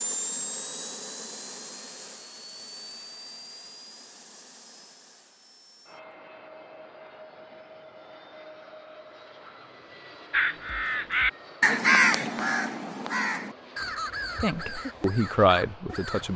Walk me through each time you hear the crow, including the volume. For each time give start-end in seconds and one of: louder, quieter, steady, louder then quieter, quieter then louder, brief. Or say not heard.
10.3-16.3 quieter.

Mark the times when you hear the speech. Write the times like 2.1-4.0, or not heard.
14.4-16.3.